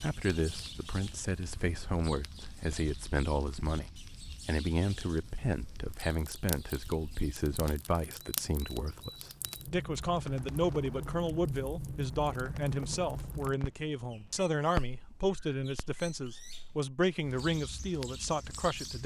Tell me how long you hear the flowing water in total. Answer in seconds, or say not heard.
not heard.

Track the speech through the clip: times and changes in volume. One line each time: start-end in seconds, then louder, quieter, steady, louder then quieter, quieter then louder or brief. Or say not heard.
0.0-19.0 steady.